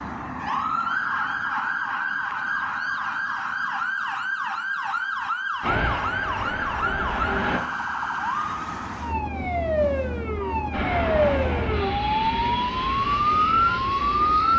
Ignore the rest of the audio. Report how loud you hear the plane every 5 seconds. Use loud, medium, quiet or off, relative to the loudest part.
off, loud, loud.